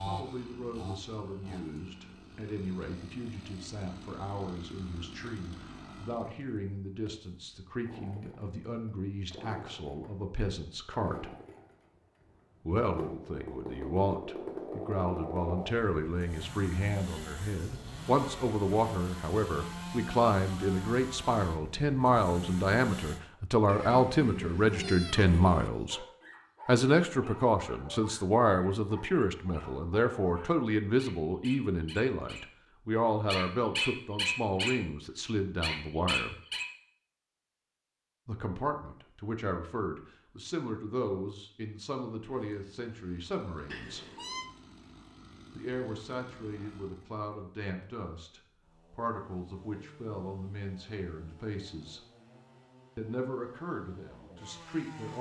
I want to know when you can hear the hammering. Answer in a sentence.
The hammering can't be heard in this clip.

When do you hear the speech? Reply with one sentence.
You can hear the speech from 0.0 to 11.3 s, from 12.7 to 26.1 s, from 26.6 to 36.4 s, from 38.2 to 44.0 s, from 45.5 to 52.0 s and from 53.0 to 55.1 s.